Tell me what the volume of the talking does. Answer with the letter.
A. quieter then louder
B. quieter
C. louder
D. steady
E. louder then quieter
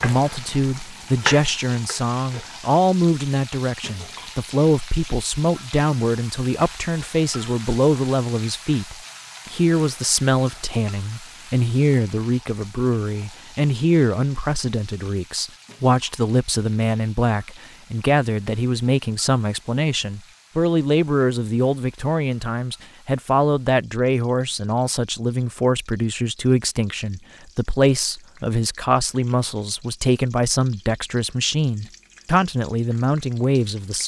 D.